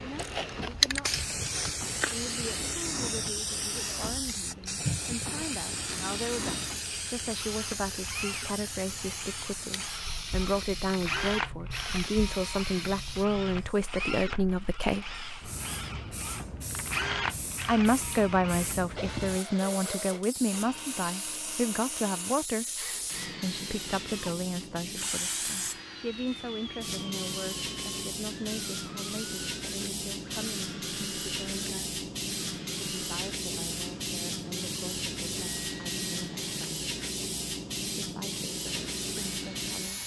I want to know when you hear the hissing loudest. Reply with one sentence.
The volume of the hissing peaks at 1 second.